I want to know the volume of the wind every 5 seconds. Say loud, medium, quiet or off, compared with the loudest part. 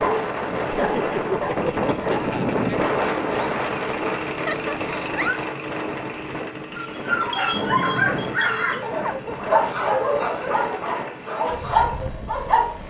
loud, medium, medium.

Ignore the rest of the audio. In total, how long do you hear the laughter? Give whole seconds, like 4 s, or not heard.
3 s.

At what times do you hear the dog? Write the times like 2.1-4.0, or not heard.
0.0-2.2, 6.8-12.7.